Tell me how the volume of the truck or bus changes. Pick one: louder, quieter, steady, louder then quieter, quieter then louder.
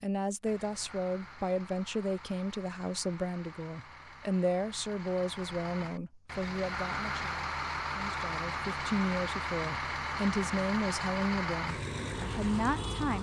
louder.